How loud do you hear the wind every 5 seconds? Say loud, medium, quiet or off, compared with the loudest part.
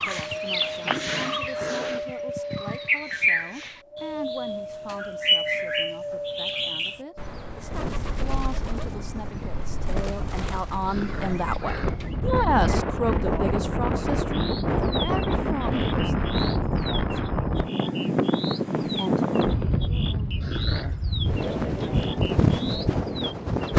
medium, medium, loud, loud, loud.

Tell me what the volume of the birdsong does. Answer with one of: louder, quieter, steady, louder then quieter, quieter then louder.
quieter.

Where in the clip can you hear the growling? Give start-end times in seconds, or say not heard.
0.8-2.0, 10.8-11.9, 20.4-21.0.